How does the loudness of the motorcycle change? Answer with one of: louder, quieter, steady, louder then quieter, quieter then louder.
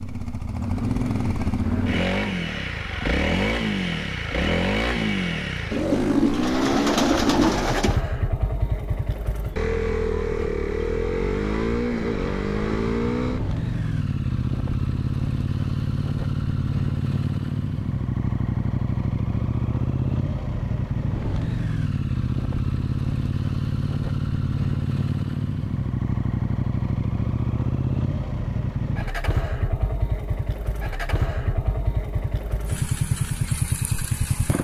steady.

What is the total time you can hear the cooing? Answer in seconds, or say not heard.
2 s.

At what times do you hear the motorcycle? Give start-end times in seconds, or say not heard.
0.0-34.6.